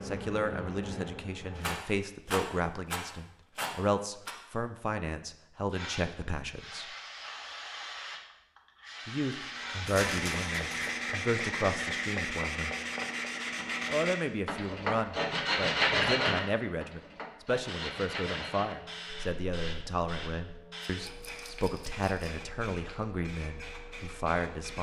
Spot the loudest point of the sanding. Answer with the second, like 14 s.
16 s.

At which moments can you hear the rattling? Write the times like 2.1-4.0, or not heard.
1.6-4.3, 9.8-10.9, 21.0-22.4.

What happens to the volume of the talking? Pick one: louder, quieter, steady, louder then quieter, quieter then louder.
steady.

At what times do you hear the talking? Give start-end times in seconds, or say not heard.
0.0-7.0, 9.1-12.8, 13.8-24.7.